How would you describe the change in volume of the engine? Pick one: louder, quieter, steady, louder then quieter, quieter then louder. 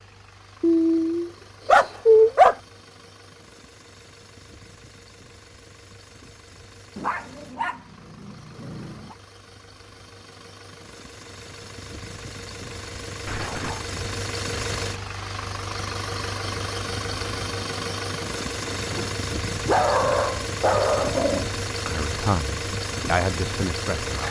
louder.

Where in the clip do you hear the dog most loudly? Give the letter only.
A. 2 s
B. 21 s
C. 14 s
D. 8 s
A.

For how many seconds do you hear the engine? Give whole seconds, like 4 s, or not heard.
24 s.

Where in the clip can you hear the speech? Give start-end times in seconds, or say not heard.
21.9-24.2.